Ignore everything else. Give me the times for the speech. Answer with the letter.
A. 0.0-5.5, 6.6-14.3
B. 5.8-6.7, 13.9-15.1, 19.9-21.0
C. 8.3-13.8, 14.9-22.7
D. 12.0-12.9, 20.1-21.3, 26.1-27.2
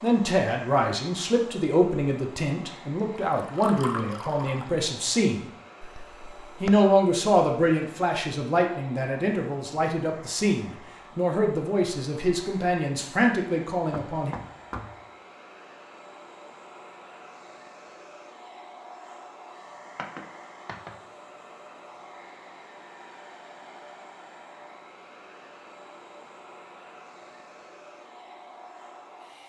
A.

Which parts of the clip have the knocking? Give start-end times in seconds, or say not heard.
5.8-6.7, 13.9-15.1, 19.9-21.0.